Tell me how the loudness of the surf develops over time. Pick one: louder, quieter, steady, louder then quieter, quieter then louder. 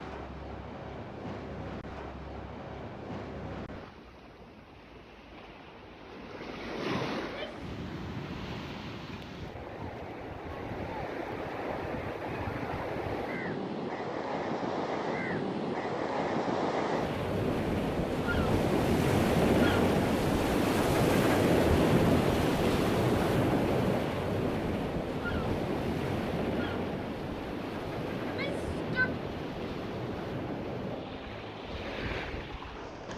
louder then quieter.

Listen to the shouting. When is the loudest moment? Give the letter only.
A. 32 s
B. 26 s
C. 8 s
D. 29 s
D.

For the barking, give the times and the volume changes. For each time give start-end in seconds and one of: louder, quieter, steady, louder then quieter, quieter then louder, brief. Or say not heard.
not heard.